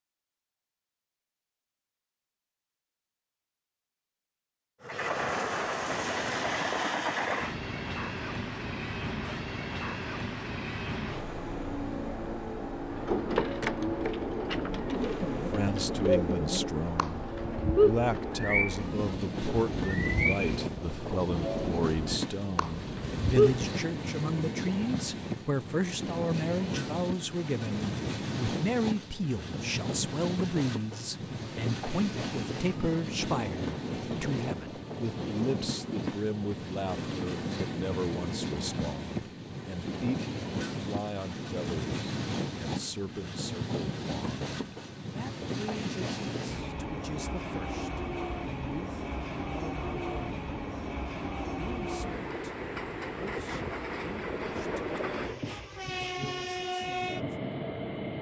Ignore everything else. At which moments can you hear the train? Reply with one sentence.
You can hear the train from 4.8 to 58.1 s.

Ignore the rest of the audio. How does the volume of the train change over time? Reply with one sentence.
The loudness of the train stays about the same.